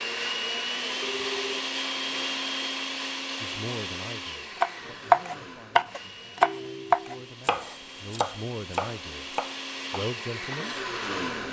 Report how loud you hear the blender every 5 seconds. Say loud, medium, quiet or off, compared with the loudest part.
loud, medium, loud.